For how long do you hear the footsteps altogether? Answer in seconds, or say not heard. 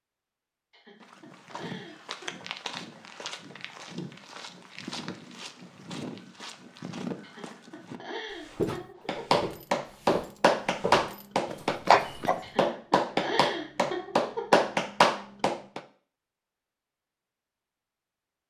12 s.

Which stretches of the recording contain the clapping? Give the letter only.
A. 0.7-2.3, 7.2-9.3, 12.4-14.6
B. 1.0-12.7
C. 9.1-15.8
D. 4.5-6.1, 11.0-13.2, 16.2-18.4
C.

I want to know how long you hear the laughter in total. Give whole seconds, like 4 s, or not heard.
6 s.